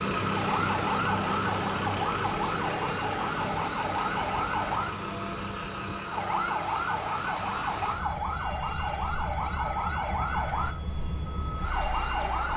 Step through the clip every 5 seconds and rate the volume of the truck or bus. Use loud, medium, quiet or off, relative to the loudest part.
loud, medium, medium.